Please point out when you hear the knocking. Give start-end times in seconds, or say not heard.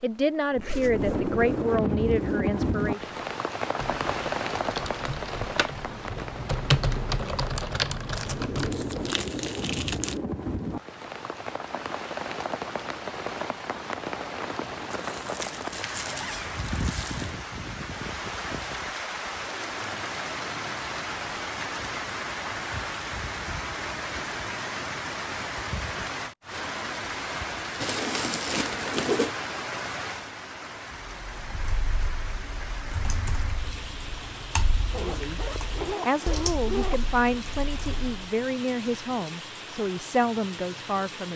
not heard.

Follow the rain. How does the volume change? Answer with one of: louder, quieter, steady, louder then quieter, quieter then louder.
quieter.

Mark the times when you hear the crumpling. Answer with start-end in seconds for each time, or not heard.
8.2-10.2, 14.9-17.4, 27.8-29.4.